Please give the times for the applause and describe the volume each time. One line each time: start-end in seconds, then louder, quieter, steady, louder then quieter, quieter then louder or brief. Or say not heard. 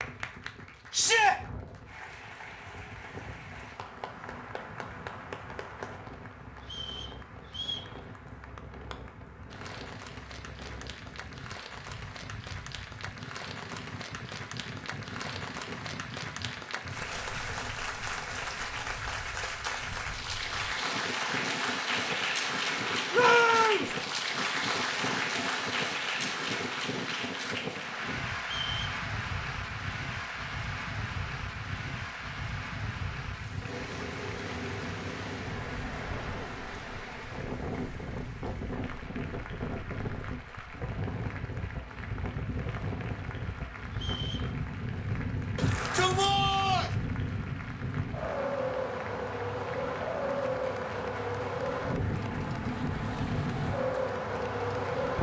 0.0-55.0 louder then quieter.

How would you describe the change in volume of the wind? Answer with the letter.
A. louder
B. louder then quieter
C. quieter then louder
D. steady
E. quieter
A.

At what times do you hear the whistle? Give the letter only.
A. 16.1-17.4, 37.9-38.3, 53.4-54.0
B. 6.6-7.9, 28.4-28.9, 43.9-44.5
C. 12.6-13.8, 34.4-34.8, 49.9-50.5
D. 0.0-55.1
B.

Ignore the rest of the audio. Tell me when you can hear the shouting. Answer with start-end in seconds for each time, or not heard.
0.9-1.4, 23.1-23.9, 45.5-47.0.